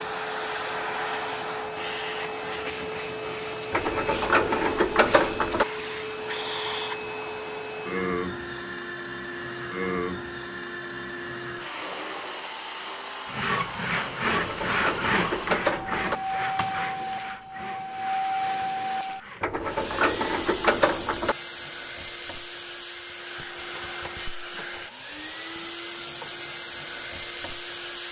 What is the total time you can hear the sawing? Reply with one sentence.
The sawing can be heard for 6 seconds in total.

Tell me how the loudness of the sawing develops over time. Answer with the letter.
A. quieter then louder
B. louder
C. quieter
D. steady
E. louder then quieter
C.